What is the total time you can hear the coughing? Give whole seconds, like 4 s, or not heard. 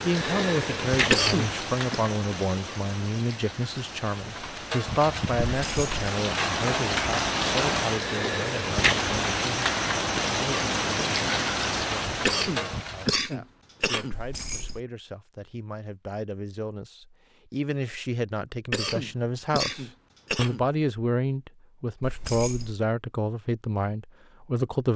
5 s.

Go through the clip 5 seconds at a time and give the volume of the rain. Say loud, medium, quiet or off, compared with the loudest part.
medium, loud, loud, off, off.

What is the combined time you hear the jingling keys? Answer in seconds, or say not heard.
2 s.